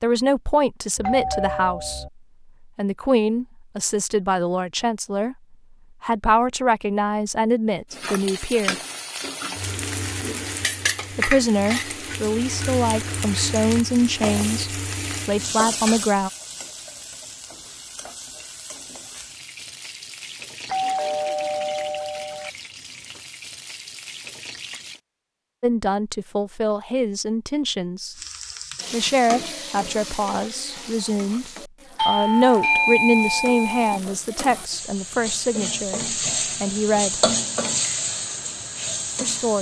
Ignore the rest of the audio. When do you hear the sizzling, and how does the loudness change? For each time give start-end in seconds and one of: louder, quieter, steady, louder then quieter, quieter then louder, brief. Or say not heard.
7.9-25.0 quieter
28.1-39.5 quieter then louder.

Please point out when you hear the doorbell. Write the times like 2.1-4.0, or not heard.
0.9-2.1, 20.6-22.5, 31.9-34.0.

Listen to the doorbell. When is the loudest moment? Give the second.
33 s.